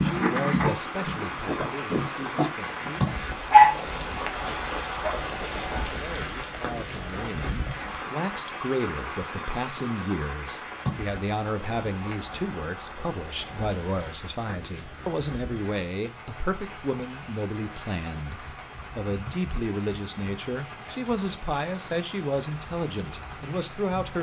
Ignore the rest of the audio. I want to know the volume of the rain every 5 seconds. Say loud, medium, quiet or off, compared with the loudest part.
loud, loud, medium, medium, medium.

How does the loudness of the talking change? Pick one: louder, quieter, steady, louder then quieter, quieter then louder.
louder.